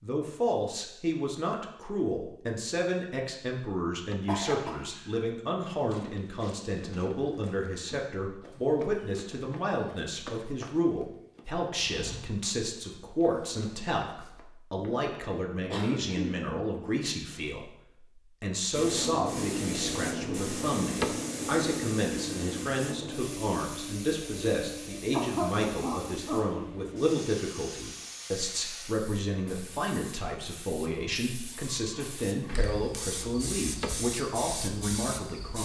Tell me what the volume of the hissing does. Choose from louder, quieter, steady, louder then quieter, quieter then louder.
quieter then louder.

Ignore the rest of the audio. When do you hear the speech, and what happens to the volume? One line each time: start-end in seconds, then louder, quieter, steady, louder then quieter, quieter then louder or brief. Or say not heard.
0.0-35.6 steady.